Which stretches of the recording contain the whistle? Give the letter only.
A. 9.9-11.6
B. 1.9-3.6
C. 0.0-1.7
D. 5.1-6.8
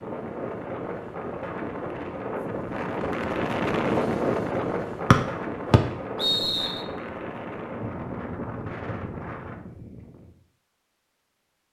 D.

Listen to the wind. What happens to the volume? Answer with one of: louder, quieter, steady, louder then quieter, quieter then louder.
louder then quieter.